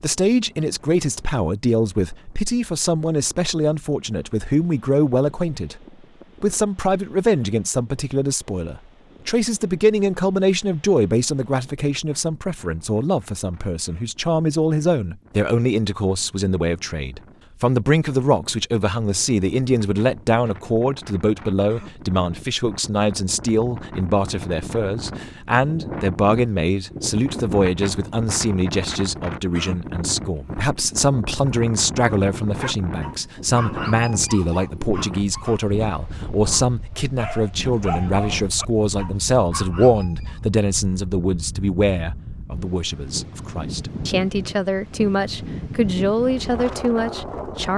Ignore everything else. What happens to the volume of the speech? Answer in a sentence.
The loudness of the speech stays about the same.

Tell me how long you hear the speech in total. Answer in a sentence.
The speech can be heard for 47 seconds in total.